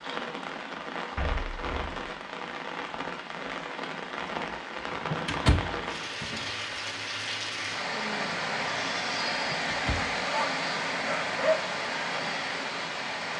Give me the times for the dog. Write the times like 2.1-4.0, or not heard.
10.2-11.7.